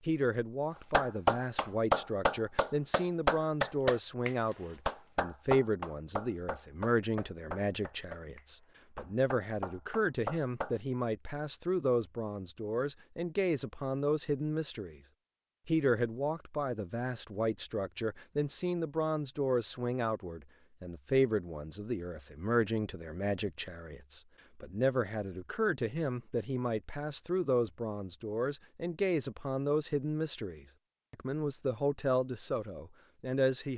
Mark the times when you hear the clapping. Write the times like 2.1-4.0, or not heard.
0.9-10.8.